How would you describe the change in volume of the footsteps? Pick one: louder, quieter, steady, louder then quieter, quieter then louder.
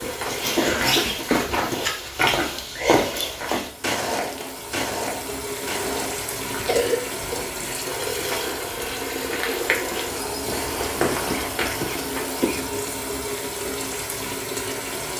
quieter then louder.